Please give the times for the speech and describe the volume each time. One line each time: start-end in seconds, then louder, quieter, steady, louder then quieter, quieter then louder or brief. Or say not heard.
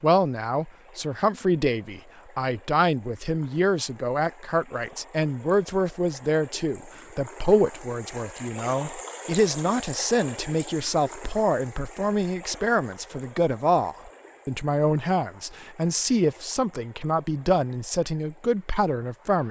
0.0-19.4 steady.